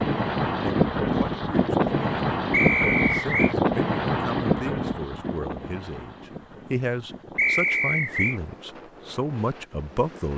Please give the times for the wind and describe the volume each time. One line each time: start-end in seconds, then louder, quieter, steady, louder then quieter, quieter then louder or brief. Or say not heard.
0.0-10.3 quieter.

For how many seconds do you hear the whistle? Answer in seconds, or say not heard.
2 s.